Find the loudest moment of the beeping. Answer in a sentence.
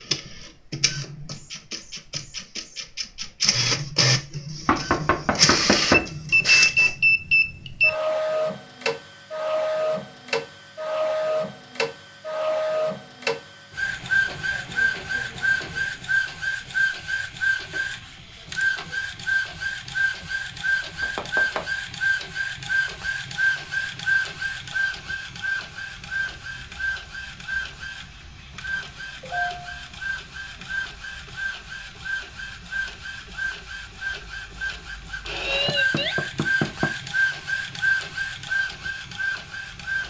The volume of the beeping peaks at 7 seconds.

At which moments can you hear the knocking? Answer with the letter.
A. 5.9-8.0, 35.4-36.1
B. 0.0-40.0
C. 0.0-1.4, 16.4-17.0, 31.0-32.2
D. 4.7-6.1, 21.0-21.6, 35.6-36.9
D.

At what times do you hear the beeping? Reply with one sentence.
The beeping can be heard from 5.9 to 8.0 s and from 35.4 to 36.1 s.